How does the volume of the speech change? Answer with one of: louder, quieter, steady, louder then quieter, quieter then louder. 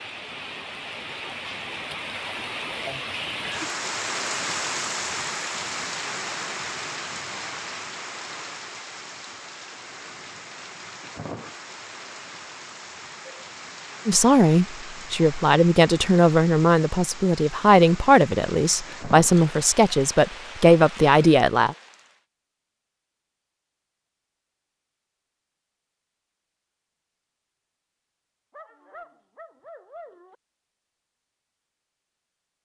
steady.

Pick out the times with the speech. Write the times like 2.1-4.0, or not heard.
14.1-21.8.